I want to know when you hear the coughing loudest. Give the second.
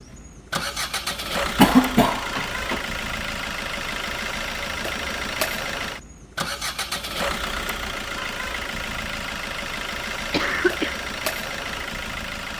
2 s.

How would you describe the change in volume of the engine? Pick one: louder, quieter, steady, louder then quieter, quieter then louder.
steady.